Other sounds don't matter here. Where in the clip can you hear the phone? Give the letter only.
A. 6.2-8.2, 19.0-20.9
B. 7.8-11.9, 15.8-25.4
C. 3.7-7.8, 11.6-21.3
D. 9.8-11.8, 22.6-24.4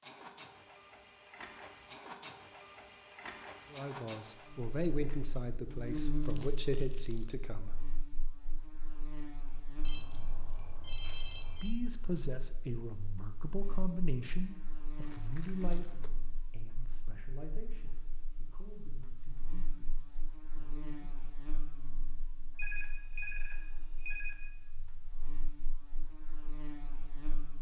D.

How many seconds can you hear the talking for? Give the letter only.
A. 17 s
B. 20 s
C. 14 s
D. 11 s
C.